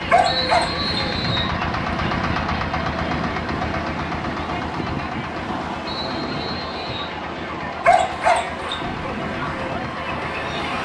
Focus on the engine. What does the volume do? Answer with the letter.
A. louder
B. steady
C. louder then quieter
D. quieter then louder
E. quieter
E.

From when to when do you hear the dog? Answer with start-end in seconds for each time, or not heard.
0.1-0.9, 7.8-8.8.